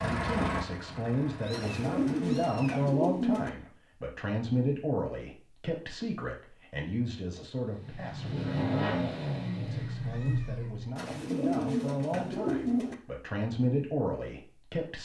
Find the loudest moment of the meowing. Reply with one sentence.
The volume of the meowing peaks at 10 seconds.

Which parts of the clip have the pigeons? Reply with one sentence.
The pigeons can be heard from 1.5 to 3.5 s and from 10.9 to 12.9 s.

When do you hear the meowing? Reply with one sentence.
The meowing can be heard from 1.4 to 2.9 s and from 9.6 to 10.9 s.